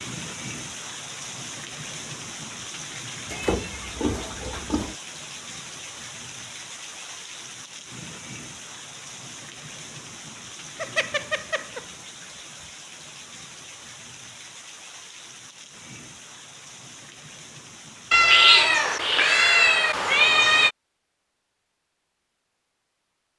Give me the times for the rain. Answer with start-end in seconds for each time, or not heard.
0.0-18.9.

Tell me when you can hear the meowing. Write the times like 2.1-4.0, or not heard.
3.3-5.0, 10.8-11.9, 18.1-20.7.